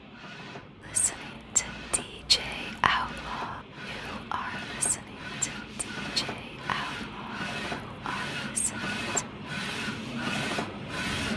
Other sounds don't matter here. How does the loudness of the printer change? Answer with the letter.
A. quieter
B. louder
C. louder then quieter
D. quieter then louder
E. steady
B.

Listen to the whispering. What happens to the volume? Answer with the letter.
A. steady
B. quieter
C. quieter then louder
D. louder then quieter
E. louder
B.